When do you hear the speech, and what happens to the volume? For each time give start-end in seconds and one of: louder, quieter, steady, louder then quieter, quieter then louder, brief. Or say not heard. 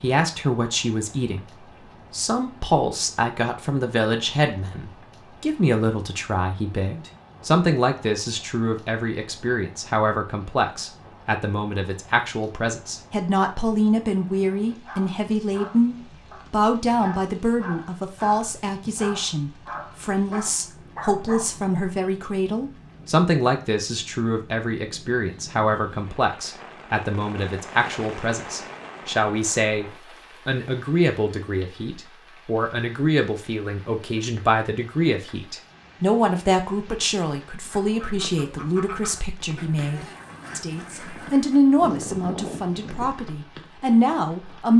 0.0-1.4 brief
2.1-44.7 steady.